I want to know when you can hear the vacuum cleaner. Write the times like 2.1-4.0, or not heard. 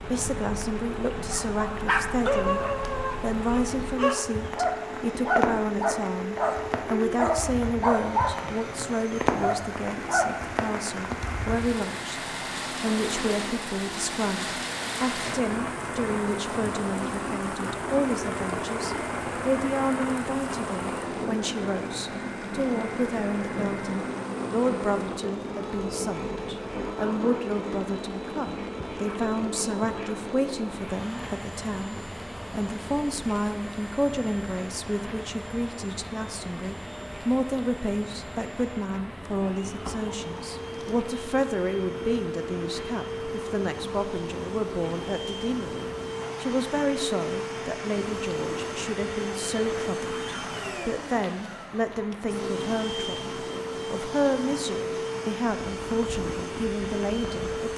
0.0-57.7.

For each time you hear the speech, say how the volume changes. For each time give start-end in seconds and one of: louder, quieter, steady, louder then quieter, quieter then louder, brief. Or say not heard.
0.0-2.6 brief
3.2-57.7 steady.